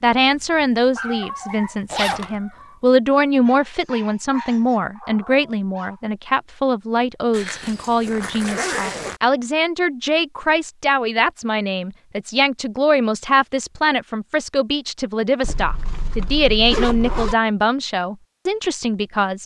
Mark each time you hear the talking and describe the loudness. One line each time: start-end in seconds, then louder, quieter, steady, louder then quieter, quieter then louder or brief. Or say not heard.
0.0-19.4 steady.